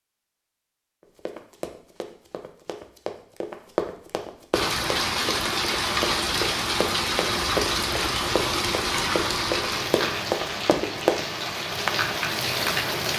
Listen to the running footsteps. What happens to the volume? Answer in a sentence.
The volume of the running footsteps goes up.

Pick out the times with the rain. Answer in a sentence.
You can hear the rain from 4.5 to 13.1 s.